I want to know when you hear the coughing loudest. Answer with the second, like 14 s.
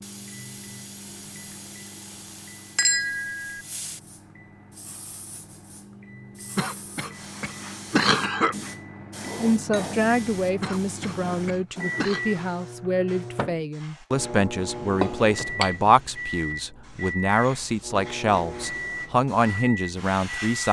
8 s.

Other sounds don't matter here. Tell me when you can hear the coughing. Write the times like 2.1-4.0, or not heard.
6.5-8.6, 10.6-12.2.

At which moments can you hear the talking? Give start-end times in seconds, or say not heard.
9.3-20.6.